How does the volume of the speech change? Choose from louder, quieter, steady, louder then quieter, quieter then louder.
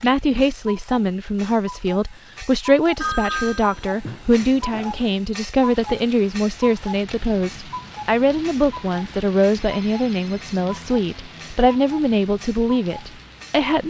steady.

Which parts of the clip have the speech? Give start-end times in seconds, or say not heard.
0.0-13.8.